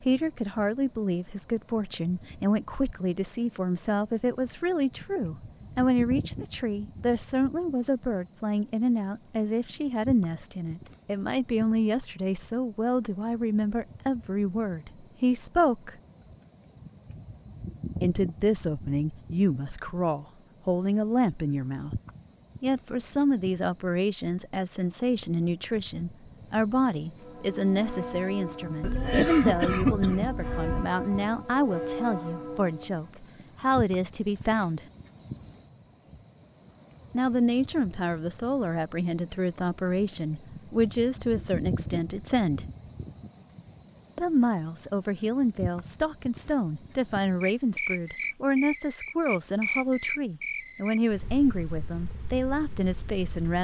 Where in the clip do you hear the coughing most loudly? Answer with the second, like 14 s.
29 s.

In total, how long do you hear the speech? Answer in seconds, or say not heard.
47 s.